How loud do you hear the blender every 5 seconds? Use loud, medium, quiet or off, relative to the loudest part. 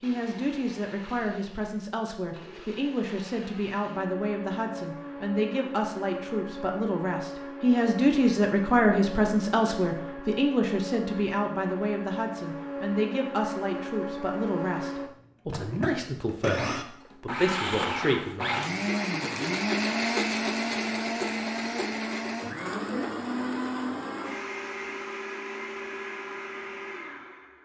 quiet, medium, medium, loud, loud, medium.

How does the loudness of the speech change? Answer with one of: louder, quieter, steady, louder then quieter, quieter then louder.
louder then quieter.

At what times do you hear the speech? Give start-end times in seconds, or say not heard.
0.0-18.6.